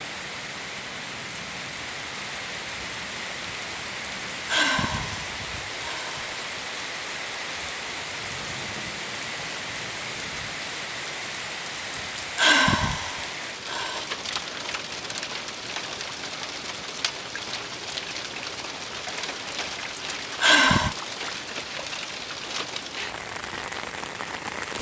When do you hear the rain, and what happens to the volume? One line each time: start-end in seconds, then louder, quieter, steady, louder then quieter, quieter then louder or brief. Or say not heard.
0.0-24.7 steady.